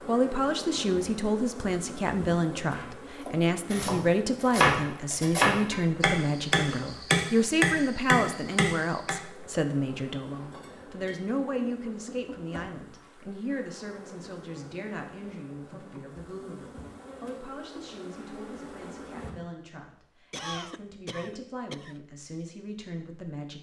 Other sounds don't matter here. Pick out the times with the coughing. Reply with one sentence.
The coughing can be heard from 20.3 to 21.9 s.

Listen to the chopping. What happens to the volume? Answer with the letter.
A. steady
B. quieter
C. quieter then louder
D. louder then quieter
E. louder
E.